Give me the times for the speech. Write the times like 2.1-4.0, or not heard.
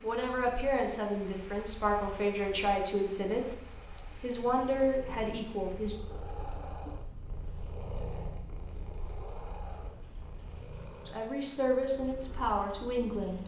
0.0-6.0, 11.1-13.4.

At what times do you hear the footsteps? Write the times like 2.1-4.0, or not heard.
not heard.